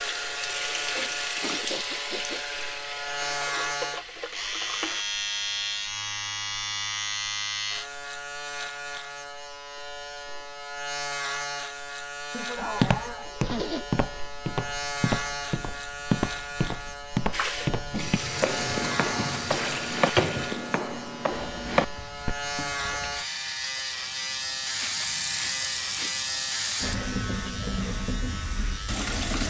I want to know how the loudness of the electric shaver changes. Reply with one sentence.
The volume of the electric shaver stays about the same.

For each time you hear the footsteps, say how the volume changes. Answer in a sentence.
The footsteps can be heard from 12.6 to 22.4 s, at a steady volume.